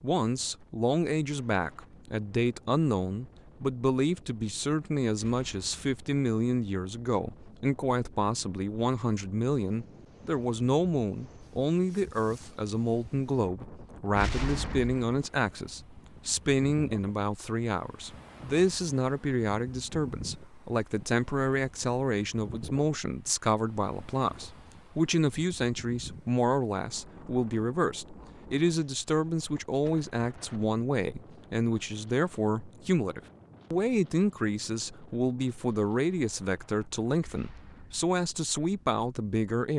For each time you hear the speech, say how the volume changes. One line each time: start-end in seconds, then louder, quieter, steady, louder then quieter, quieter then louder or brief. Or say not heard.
0.0-39.7 steady.